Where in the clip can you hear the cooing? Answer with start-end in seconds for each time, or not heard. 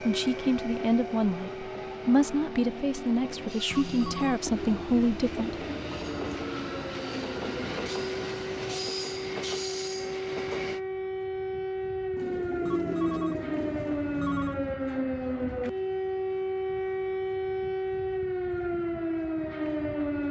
4.5-6.5, 12.2-14.0.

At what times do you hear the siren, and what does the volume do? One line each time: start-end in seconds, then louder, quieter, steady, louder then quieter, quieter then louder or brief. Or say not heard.
0.0-20.2 louder.